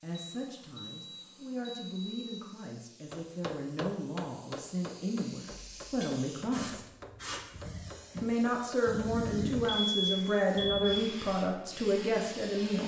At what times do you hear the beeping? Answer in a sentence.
The beeping can be heard from 0.1 to 2.5 s, from 5.5 to 6.1 s and from 9.6 to 10.9 s.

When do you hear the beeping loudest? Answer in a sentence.
The loudest moment of the beeping is at 10 seconds.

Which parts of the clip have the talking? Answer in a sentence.
You can hear the talking from 0.0 to 6.8 s and from 8.2 to 12.8 s.